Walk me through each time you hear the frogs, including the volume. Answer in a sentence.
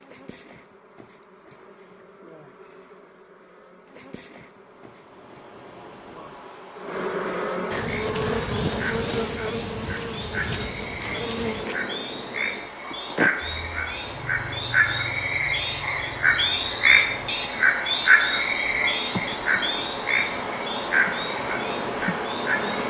You can hear the frogs from 7.8 to 22.8 s, getting louder then quieter.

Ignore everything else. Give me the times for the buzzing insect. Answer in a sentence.
You can hear the buzzing insect from 0.0 to 22.8 s.